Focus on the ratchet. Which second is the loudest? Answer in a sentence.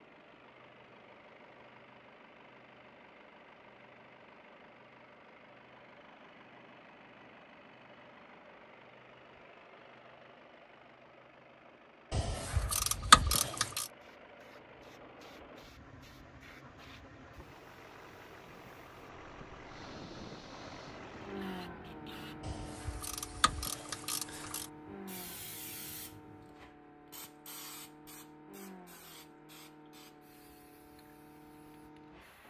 The loudest moment of the ratchet is at 13 seconds.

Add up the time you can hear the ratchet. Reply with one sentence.
You can hear the ratchet for 4 seconds altogether.